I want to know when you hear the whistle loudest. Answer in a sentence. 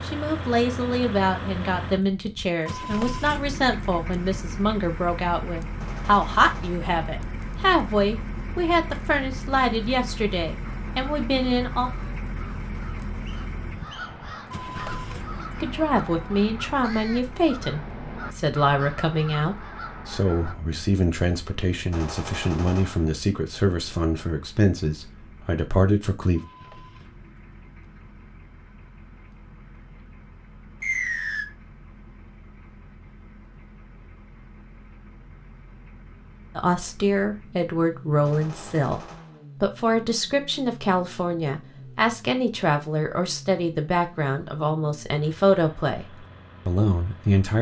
The volume of the whistle peaks at 31 seconds.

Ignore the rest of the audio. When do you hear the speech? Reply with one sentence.
The speech can be heard from 0.0 to 11.9 s, from 15.6 to 26.4 s and from 36.5 to 47.5 s.